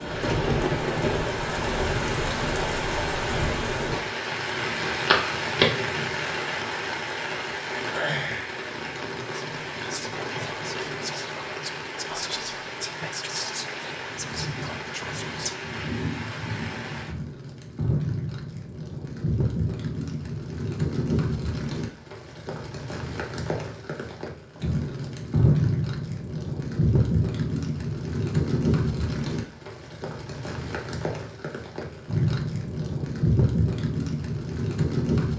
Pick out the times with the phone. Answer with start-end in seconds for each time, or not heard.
5.1-5.7.